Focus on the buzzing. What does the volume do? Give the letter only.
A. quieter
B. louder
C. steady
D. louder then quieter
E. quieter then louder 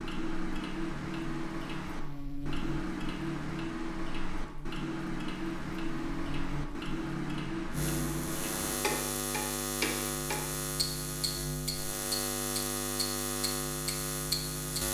B.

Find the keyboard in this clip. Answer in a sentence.
The keyboard can't be heard in this clip.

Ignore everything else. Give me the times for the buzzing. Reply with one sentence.
You can hear the buzzing from 0.1 to 14.8 s.